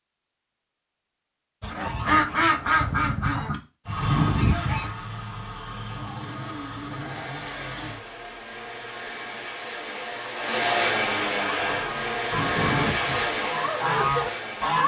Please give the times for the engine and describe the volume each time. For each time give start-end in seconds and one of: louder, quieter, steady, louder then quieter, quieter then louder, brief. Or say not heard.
3.9-14.8 louder.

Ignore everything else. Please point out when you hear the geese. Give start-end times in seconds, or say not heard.
1.6-4.9, 11.6-14.8.